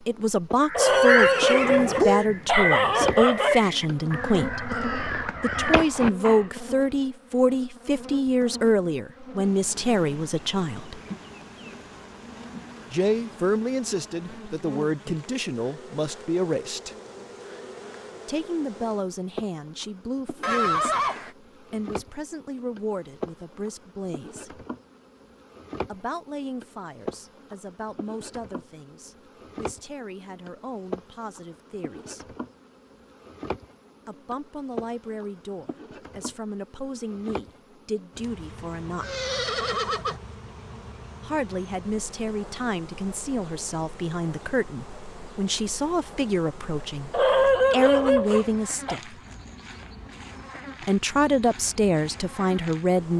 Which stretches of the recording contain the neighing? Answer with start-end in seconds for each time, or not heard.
0.8-2.2, 20.4-21.3, 39.0-40.2.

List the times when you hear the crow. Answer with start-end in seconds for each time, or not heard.
0.7-6.5.